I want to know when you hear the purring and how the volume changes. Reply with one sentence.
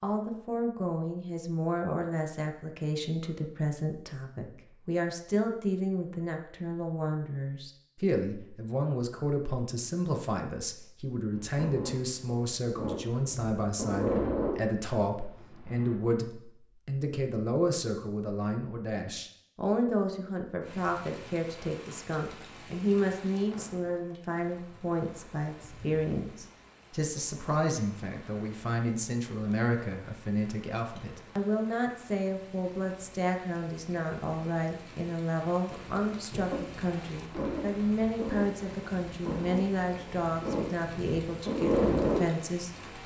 You can hear the purring from 11.3 to 15.9 s, getting louder then quieter; and from 35.7 to 43.0 s, getting louder.